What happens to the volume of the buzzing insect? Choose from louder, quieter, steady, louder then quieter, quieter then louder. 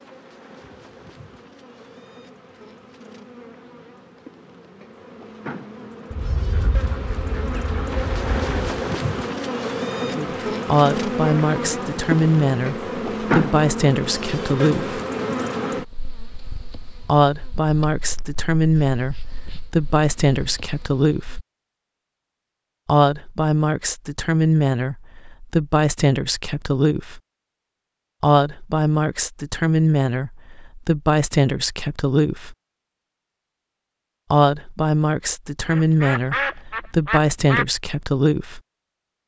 louder then quieter.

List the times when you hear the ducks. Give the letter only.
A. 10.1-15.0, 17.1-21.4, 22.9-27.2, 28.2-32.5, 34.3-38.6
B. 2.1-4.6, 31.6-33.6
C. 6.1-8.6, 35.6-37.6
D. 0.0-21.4
C.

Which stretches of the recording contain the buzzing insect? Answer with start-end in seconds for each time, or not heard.
0.0-21.4.